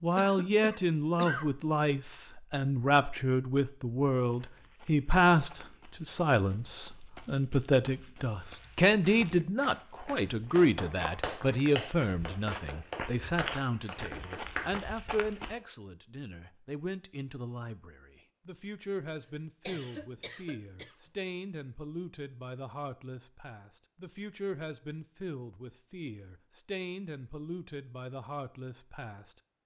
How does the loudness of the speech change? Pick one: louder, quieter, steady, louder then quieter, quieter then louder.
quieter.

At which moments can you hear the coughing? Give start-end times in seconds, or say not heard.
0.1-1.5, 19.6-20.9.